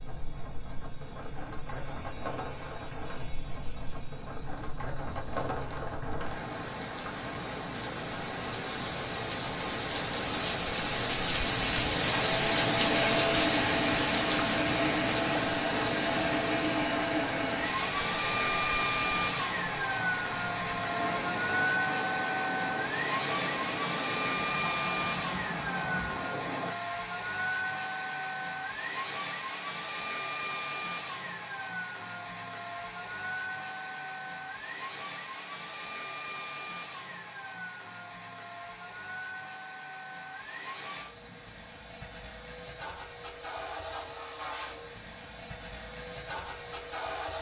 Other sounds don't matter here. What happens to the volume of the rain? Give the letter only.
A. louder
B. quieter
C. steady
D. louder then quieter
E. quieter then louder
D.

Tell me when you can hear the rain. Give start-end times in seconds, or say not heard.
0.0-26.8.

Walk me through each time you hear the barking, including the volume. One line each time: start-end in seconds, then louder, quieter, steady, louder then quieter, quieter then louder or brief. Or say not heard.
not heard.